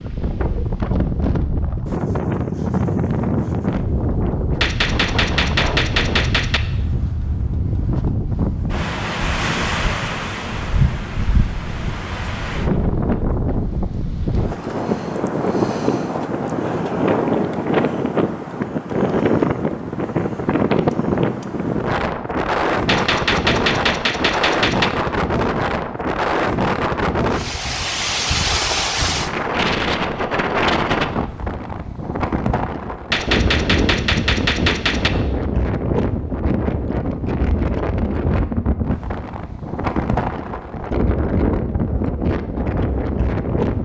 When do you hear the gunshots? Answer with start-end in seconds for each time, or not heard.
4.6-6.6, 22.9-24.9, 33.1-35.1.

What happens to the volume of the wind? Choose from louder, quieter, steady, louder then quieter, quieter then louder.
steady.